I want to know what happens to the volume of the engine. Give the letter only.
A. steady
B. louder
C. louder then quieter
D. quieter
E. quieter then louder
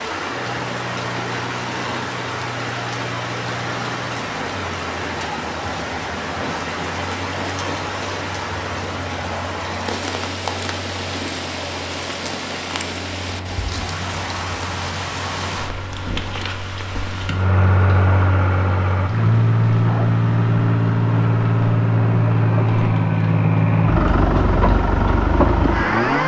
B.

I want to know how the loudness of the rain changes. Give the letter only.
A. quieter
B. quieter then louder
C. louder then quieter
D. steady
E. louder
A.